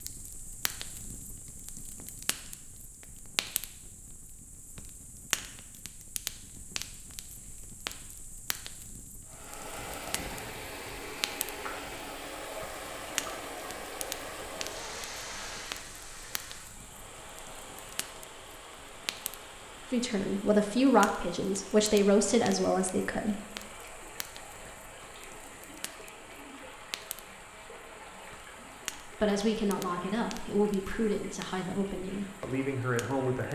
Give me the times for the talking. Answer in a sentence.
You can hear the talking from 19.9 to 23.4 s and from 29.1 to 33.5 s.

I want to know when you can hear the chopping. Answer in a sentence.
You can't hear the chopping here.